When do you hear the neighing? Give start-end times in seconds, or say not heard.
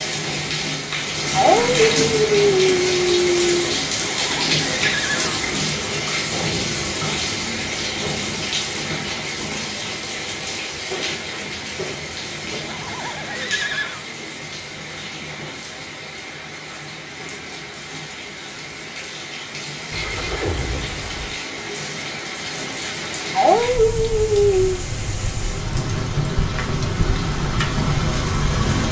4.0-5.4, 12.7-14.1, 19.9-21.4.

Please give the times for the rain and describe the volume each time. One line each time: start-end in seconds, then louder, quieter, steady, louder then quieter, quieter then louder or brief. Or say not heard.
0.0-28.8 quieter then louder.